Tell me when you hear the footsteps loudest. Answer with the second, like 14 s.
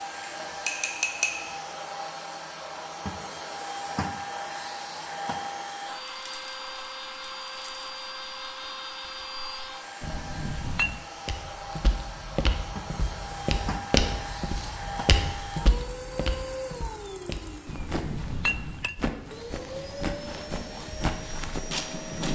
14 s.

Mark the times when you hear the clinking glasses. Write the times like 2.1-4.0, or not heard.
0.2-1.6, 10.0-11.1, 17.6-18.9.